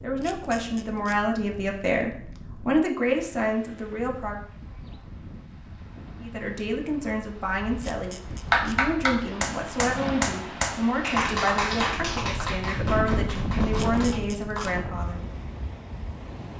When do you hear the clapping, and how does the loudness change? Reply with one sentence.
The clapping can be heard from 8.5 to 14.8 s, getting quieter.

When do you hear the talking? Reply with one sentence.
The talking can be heard from 0.0 to 4.4 s and from 6.2 to 15.2 s.